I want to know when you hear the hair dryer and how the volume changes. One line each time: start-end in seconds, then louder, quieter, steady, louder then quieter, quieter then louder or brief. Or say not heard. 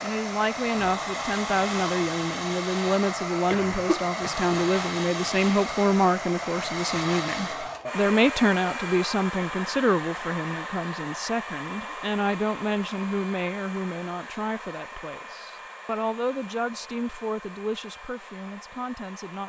0.0-19.4 quieter.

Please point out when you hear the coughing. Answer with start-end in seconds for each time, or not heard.
3.5-4.5.